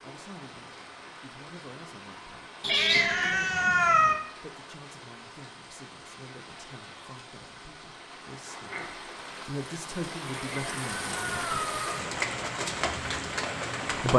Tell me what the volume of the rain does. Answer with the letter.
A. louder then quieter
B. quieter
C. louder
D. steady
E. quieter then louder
C.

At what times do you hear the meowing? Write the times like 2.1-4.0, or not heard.
2.6-4.2, 10.2-12.1.